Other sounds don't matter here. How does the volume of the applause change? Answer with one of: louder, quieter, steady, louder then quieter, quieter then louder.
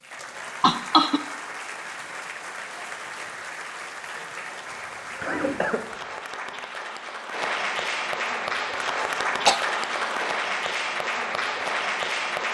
louder.